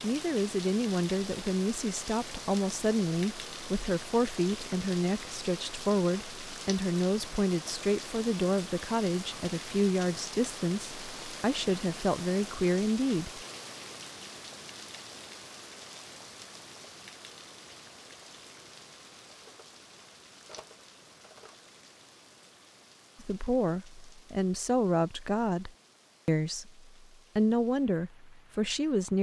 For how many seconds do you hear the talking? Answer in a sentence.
The talking can be heard for 19 seconds in total.